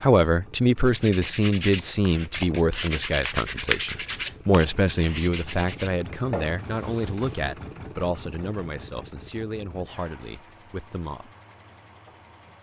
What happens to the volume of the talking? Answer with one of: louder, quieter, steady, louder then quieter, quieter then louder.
quieter.